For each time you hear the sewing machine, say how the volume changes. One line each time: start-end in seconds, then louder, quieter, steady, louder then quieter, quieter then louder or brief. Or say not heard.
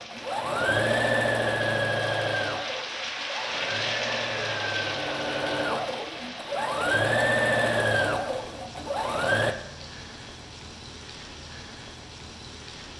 0.0-9.6 quieter then louder.